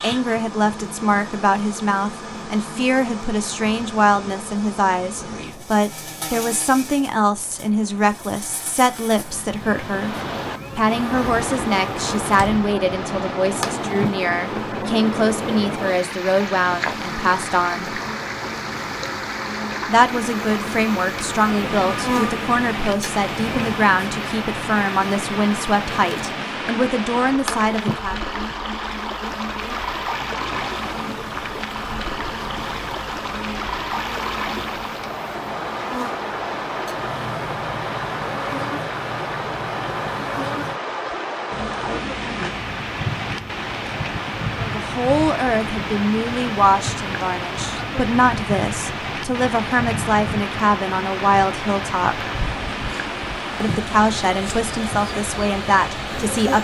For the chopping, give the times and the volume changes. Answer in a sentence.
The chopping can't be heard in this clip.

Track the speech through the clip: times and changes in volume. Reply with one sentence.
You can hear the speech from 0.0 to 10.2 s, at a steady volume; from 10.8 to 18.0 s, at a steady volume; from 19.9 to 28.2 s, at a steady volume; from 44.5 to 52.2 s, at a steady volume; and briefly from 53.6 to 56.5 s.